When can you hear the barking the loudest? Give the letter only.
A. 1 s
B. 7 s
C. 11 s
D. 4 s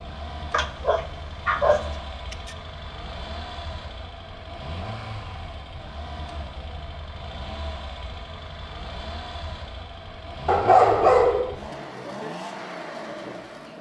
C.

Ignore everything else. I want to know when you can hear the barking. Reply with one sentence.
The barking can be heard from 0.5 to 2.5 s and from 10.4 to 11.6 s.